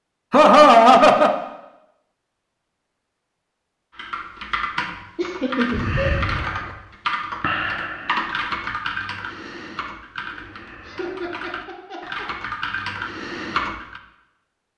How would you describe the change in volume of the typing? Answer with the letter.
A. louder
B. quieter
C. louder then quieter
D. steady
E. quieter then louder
E.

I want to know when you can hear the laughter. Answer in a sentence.
The laughter can be heard from 0.3 to 1.4 s, from 5.2 to 6.0 s and from 10.8 to 12.2 s.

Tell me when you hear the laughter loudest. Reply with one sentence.
The volume of the laughter peaks at 1 second.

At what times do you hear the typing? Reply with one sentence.
You can hear the typing from 4.0 to 14.0 s.